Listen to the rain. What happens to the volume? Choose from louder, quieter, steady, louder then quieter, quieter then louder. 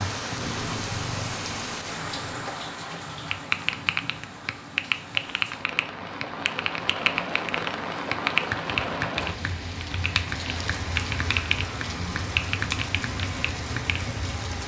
quieter then louder.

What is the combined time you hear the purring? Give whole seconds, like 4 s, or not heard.
2 s.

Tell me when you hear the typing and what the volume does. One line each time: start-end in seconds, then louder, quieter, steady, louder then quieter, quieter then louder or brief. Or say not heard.
3.3-14.1 steady.